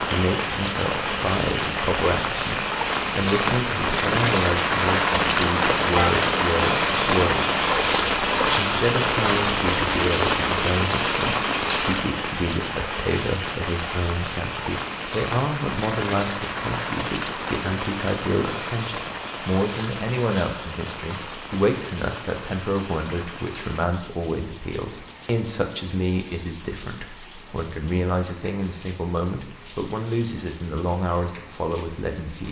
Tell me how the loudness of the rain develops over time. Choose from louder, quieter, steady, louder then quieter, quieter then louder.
quieter.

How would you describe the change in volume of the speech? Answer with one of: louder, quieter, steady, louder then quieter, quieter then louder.
steady.